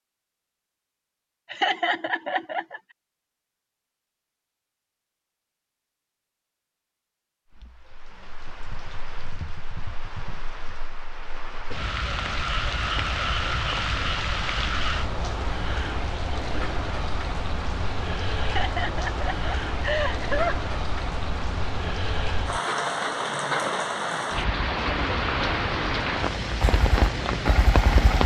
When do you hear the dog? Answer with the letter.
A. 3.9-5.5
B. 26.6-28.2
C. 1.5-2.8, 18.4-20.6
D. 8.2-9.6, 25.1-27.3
B.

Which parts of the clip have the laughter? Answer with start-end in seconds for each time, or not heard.
1.5-2.8, 18.4-20.6.